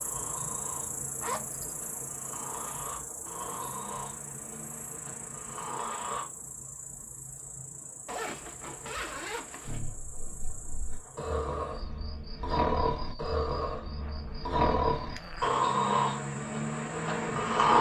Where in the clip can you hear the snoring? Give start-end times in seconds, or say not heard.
0.0-6.2, 9.7-17.7.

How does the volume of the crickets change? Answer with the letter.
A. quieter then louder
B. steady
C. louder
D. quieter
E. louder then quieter
D.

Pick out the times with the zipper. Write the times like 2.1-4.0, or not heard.
1.2-1.8, 8.1-9.8, 14.0-15.6.